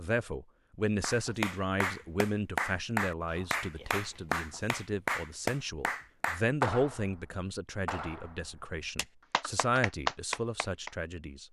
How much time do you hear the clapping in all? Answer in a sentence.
The clapping can be heard for 10 seconds in total.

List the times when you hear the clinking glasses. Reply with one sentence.
The clinking glasses can't be heard in this clip.